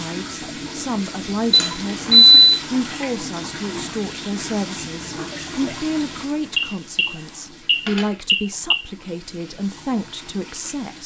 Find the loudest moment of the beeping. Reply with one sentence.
The loudest moment of the beeping is at 2 seconds.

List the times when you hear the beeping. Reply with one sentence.
The beeping can be heard from 1.5 to 2.5 s and from 6.5 to 8.8 s.